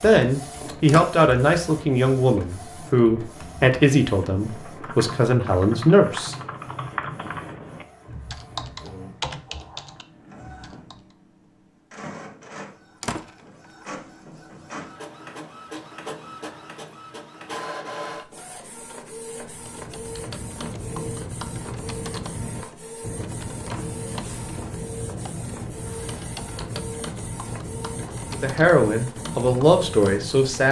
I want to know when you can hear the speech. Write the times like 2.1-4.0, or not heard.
0.0-6.3, 28.3-30.6.